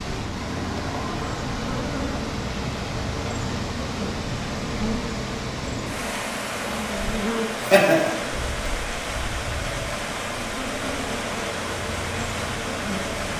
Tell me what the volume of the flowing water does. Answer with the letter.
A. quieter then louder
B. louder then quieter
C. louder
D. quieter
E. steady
E.